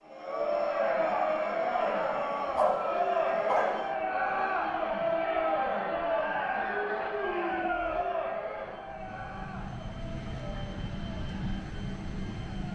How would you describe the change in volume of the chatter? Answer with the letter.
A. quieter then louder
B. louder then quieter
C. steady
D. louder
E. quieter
E.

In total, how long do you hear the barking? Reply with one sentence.
The barking can be heard for 2 seconds in total.